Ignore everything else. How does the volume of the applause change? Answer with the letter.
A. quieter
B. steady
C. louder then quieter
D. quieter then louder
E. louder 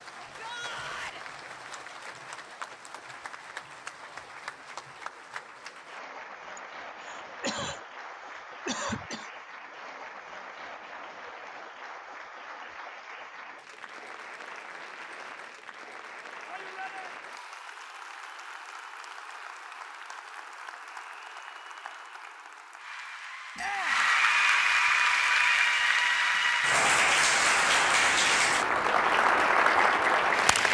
E.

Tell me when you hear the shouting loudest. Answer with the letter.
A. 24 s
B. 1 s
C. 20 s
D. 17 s
A.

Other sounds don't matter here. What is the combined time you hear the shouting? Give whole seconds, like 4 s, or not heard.
2 s.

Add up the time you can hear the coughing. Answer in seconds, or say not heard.
3 s.